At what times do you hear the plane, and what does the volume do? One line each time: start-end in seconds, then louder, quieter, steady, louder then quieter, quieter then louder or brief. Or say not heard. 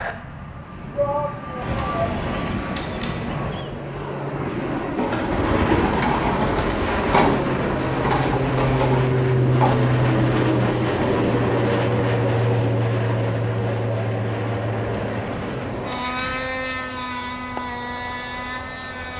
0.0-19.1 louder then quieter.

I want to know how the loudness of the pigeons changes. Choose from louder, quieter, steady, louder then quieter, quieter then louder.
quieter.